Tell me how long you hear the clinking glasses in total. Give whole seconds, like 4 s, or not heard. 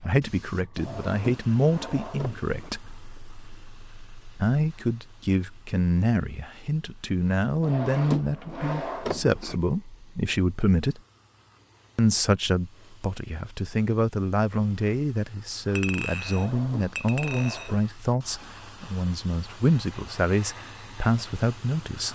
2 s.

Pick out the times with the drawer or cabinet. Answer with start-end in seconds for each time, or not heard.
0.8-2.7, 7.6-9.6, 16.2-17.8.